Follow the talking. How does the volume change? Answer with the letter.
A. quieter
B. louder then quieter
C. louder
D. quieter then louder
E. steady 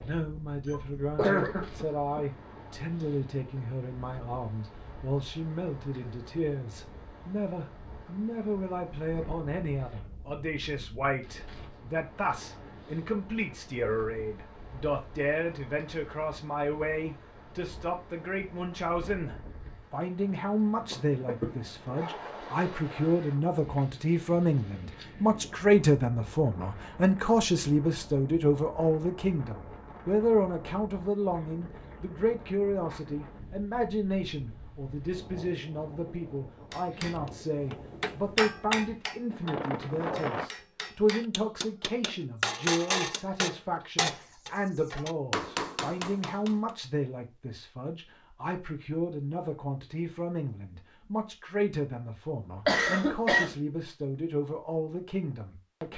B.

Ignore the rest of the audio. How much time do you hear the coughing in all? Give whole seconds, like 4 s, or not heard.
3 s.